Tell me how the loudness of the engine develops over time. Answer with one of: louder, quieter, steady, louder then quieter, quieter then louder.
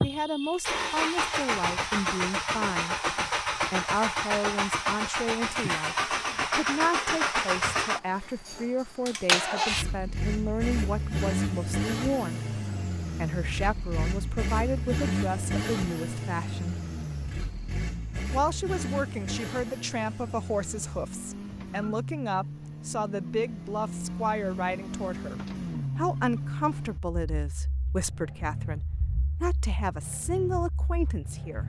quieter.